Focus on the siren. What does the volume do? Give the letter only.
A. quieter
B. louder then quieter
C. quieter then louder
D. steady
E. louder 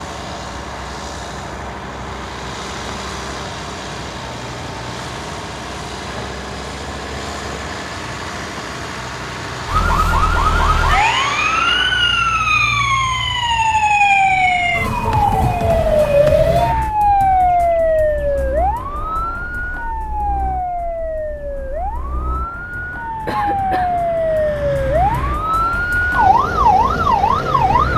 C.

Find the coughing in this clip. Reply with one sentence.
You can hear the coughing from 23.2 to 23.9 s.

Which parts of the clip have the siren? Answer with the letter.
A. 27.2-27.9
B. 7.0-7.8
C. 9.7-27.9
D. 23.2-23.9
C.